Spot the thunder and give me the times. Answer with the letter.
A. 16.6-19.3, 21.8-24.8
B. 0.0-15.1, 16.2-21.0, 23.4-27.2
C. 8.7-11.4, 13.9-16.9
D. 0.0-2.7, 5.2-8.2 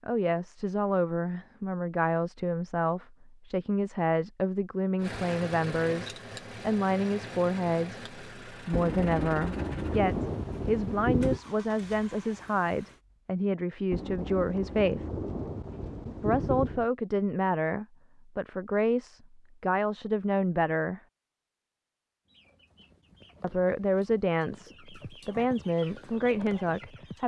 C.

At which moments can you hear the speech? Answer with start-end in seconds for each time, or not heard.
0.0-15.1, 16.2-21.0, 23.4-27.2.